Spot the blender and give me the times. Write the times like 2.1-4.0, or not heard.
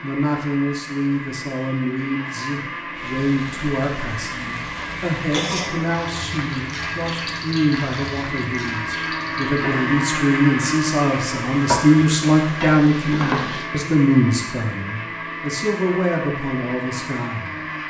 0.0-17.8.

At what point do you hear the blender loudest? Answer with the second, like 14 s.
10 s.